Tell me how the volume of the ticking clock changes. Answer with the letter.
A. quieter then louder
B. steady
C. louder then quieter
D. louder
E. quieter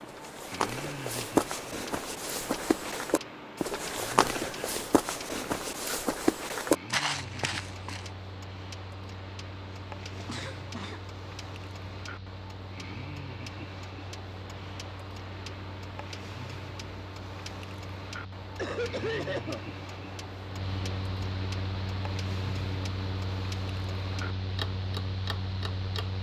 B.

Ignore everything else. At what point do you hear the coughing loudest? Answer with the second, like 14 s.
19 s.